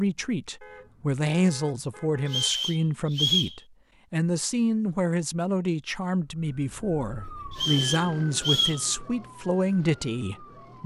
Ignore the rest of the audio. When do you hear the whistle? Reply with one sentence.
You can hear the whistle from 2.2 to 3.5 s and from 7.5 to 8.8 s.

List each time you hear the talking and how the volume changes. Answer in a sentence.
The talking can be heard from 0.0 to 10.8 s, at a steady volume.